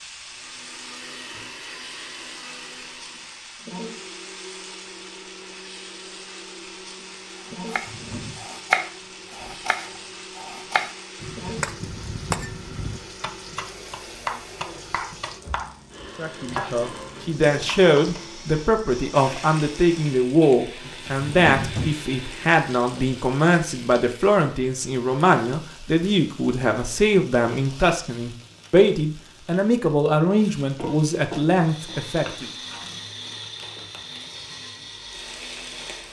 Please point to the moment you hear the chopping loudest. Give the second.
9 s.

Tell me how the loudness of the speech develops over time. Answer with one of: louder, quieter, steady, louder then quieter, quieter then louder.
steady.